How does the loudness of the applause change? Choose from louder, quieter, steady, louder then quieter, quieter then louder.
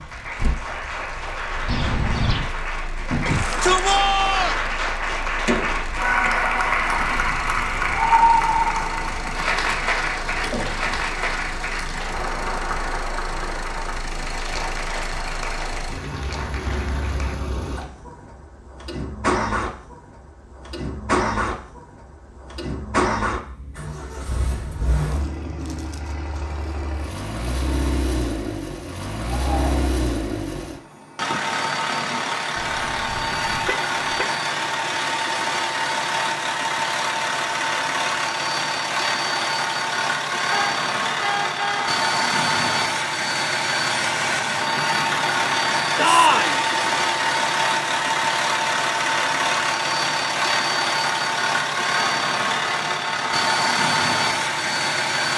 louder then quieter.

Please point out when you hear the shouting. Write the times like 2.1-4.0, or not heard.
3.2-4.5, 29.2-29.9, 46.0-46.6.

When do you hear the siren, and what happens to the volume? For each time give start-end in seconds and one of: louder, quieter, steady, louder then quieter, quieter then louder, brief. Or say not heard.
not heard.